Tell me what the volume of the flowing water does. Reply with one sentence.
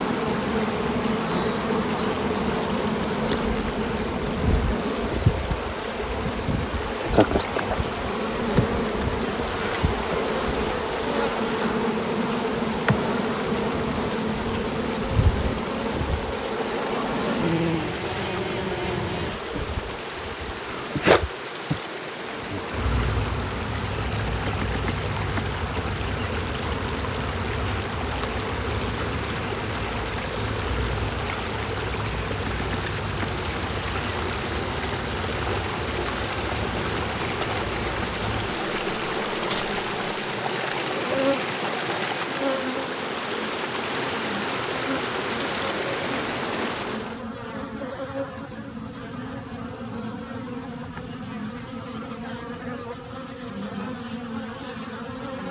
The volume of the flowing water goes up.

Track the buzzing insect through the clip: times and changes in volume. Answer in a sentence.
You can hear the buzzing insect from 0.0 to 55.4 s, getting quieter.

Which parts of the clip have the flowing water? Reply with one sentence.
You can hear the flowing water from 0.0 to 47.2 s.